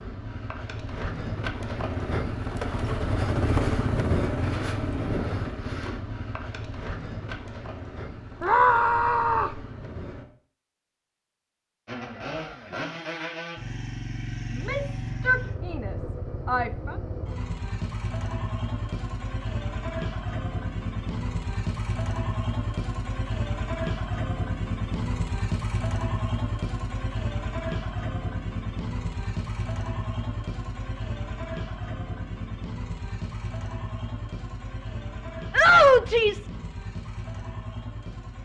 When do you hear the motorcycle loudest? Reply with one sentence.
The loudest moment of the motorcycle is at 4 seconds.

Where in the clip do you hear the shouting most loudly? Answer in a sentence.
The volume of the shouting peaks at 36 seconds.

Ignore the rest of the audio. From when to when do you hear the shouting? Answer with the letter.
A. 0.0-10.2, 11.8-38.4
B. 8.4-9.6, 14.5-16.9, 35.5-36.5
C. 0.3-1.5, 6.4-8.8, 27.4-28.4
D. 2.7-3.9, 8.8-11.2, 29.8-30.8
B.